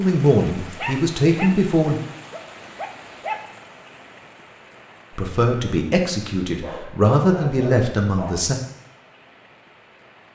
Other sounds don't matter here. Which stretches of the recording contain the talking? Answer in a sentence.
The talking can be heard from 0.0 to 1.9 s and from 5.2 to 8.6 s.